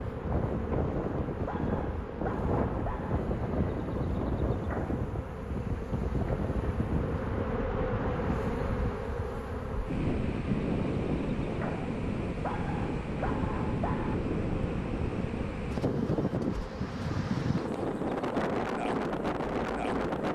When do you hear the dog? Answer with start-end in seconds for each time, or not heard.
1.4-3.2, 12.4-14.2.